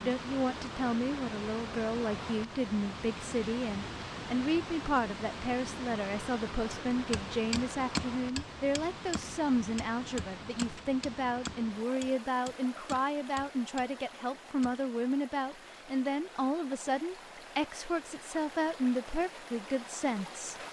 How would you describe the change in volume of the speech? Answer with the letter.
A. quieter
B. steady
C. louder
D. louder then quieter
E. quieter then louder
B.